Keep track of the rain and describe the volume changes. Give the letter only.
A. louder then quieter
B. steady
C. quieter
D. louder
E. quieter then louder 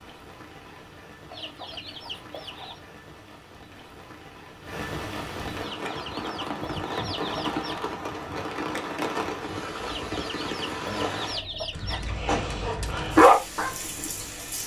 A.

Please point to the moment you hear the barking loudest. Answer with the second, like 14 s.
13 s.